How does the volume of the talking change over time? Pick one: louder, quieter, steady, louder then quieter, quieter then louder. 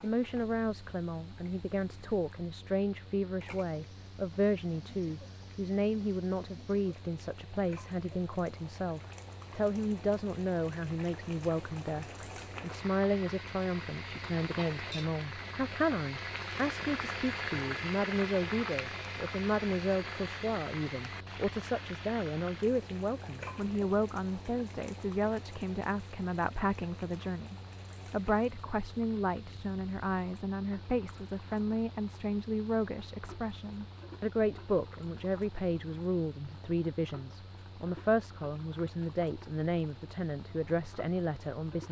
steady.